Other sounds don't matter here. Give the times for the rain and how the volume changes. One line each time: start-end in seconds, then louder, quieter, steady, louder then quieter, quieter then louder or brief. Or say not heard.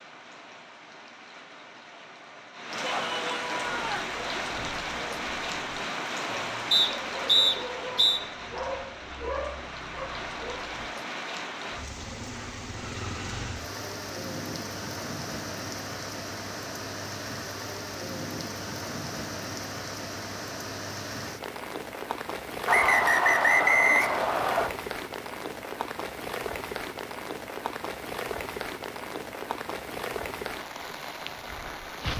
0.0-32.1 steady.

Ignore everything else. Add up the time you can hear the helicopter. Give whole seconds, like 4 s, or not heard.
not heard.